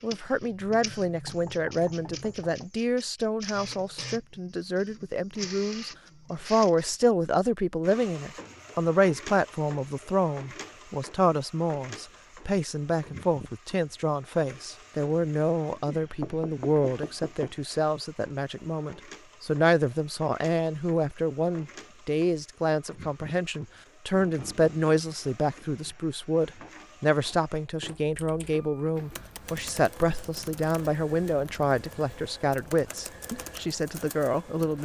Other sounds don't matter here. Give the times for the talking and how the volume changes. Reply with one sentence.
You can hear the talking from 0.0 to 34.8 s, at a steady volume.